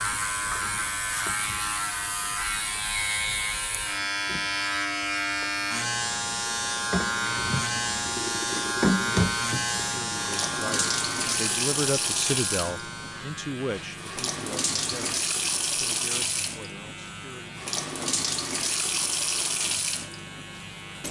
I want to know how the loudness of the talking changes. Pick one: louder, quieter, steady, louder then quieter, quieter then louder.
louder then quieter.